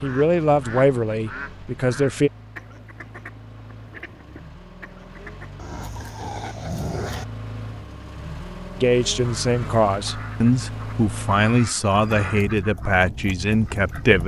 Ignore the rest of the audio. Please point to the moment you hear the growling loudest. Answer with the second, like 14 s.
7 s.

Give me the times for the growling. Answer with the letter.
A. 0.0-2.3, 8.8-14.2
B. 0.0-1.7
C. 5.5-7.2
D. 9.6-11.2
C.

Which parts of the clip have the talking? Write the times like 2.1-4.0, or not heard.
0.0-2.3, 8.8-14.2.